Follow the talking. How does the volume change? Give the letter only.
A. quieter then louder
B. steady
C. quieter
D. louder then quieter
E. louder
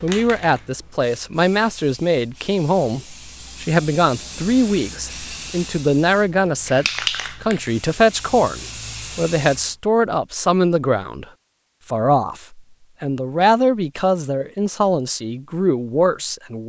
B.